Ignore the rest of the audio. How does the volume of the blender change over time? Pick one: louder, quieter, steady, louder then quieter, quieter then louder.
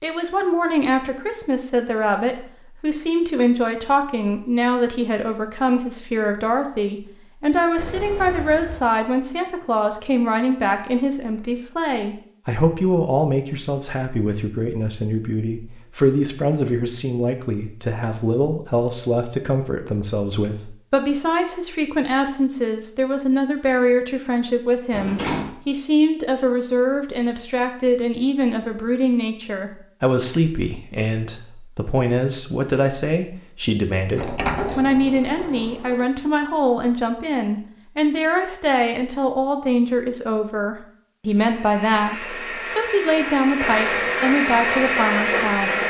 louder.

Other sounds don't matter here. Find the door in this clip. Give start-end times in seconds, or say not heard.
7.8-8.8, 24.9-25.6, 34.1-36.0.